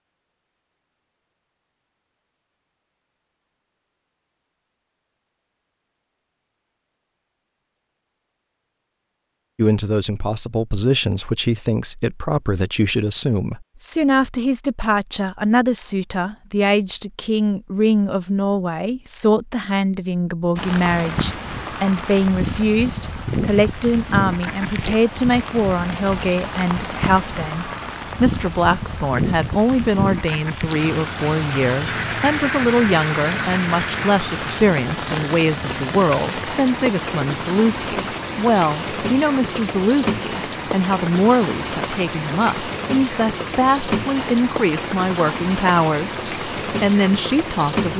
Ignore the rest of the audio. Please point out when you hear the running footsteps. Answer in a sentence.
The running footsteps can't be heard in this clip.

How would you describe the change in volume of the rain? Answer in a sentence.
The volume of the rain stays about the same.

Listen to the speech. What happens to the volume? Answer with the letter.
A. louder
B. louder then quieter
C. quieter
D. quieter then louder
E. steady
E.